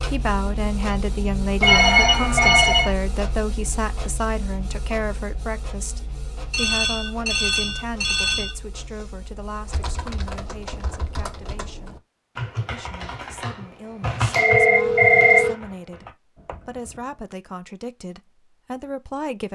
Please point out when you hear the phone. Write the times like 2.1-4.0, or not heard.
1.6-3.0, 6.5-8.6, 14.3-15.6.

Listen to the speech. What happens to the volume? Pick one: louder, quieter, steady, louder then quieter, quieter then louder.
quieter then louder.